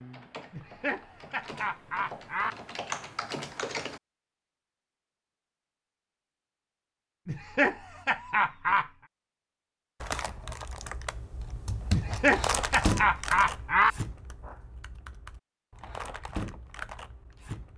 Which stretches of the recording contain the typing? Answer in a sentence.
The typing can be heard from 0.0 to 4.0 s and from 10.0 to 17.7 s.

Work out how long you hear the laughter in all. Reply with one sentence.
You can hear the laughter for 6 seconds altogether.